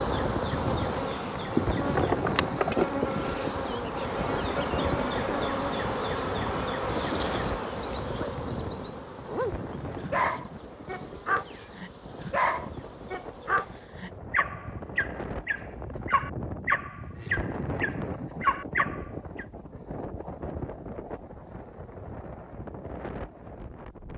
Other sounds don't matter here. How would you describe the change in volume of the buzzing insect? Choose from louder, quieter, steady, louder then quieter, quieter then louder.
quieter.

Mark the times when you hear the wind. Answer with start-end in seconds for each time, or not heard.
0.0-24.1.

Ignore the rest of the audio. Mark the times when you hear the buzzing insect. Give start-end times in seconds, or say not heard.
0.0-13.7.